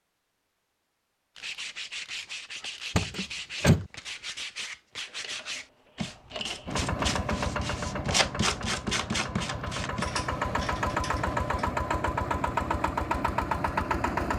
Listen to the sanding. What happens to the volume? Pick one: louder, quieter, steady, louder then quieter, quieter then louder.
louder.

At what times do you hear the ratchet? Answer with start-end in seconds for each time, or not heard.
1.4-2.9, 5.0-6.8, 10.0-11.7.